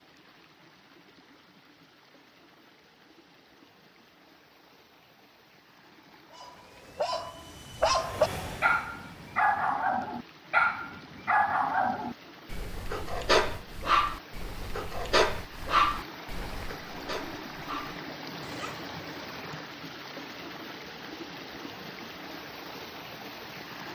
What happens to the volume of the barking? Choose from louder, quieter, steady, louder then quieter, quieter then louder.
quieter.